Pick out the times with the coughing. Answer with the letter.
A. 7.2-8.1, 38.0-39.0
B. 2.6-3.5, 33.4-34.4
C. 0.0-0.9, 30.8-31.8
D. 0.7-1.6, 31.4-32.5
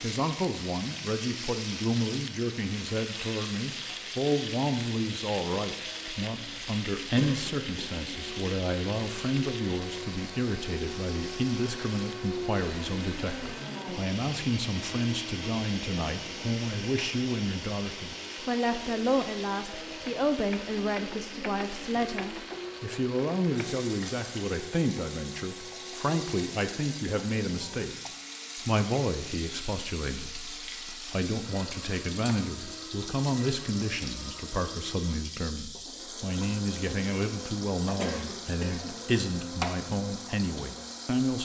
A.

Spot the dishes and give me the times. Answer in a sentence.
The dishes can't be heard in this clip.